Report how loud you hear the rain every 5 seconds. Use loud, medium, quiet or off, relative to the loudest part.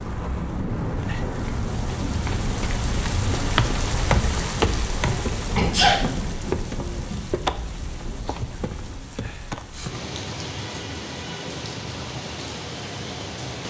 loud, loud, medium.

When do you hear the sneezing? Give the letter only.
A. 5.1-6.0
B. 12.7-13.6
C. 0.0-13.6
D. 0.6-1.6
A.